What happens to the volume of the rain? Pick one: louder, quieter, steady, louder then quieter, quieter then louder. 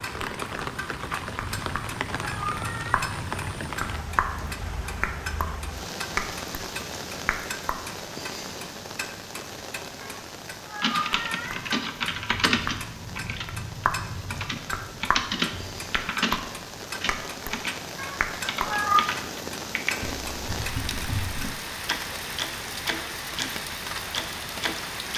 quieter then louder.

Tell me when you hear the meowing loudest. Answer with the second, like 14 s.
19 s.